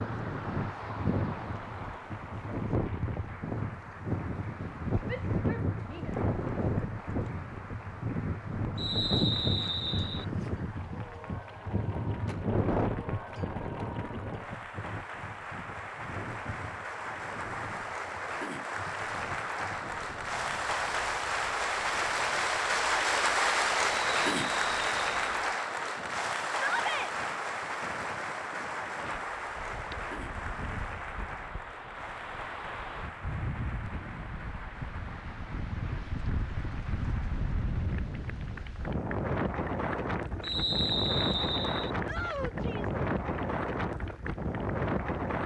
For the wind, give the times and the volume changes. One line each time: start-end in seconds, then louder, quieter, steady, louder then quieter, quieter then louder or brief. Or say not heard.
0.0-45.4 quieter then louder.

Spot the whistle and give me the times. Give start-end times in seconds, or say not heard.
8.8-10.2, 23.9-25.4, 40.4-41.9.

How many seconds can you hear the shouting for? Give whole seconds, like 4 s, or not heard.
3 s.